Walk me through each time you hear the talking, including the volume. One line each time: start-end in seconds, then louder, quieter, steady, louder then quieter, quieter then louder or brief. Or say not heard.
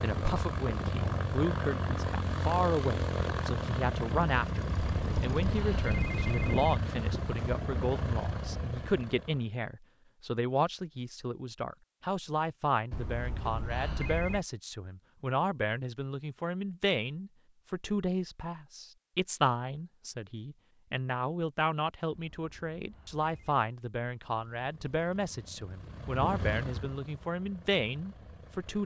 0.0-28.8 steady.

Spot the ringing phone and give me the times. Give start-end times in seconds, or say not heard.
4.8-6.8, 12.9-14.4, 22.1-23.6.